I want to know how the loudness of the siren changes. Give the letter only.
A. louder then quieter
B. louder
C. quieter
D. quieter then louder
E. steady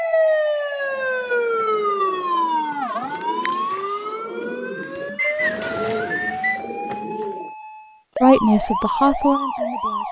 D.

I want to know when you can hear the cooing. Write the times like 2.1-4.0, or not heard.
0.8-7.5.